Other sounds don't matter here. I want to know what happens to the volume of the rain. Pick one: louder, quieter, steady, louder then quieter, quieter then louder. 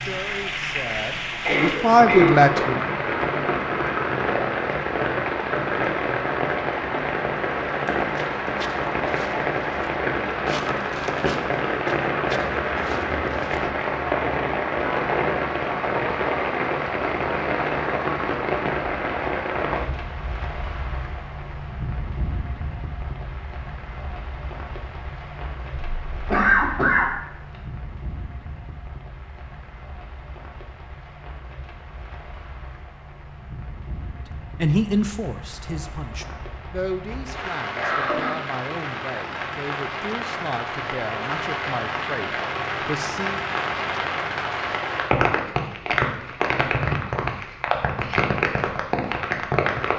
quieter then louder.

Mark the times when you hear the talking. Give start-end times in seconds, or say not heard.
0.0-2.8, 34.5-43.5.